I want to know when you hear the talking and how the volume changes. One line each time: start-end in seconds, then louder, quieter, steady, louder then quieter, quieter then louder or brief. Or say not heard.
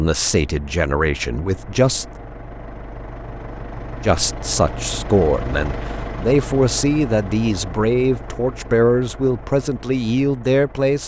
0.0-2.0 brief
4.0-11.0 steady.